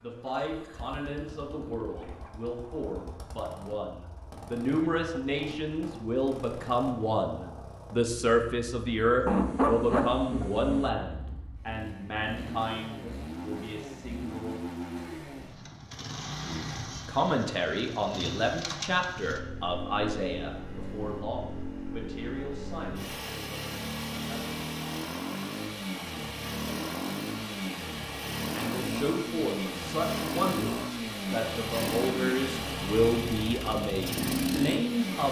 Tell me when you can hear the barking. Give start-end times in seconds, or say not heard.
9.2-10.9.